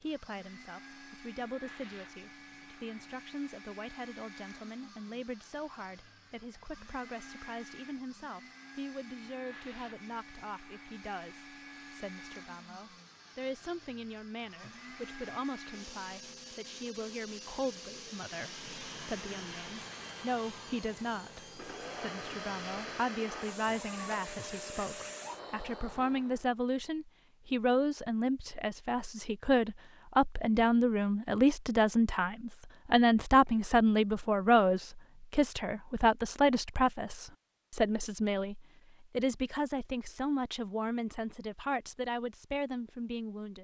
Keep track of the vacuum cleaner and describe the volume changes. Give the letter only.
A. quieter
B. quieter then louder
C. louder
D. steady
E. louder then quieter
C.